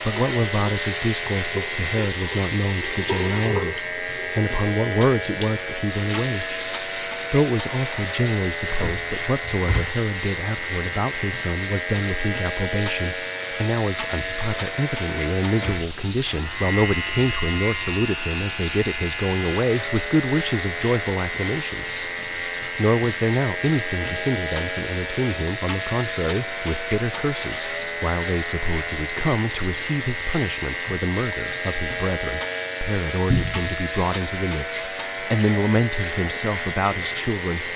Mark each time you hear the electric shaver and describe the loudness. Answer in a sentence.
The electric shaver can be heard from 0.0 to 37.7 s, at a steady volume.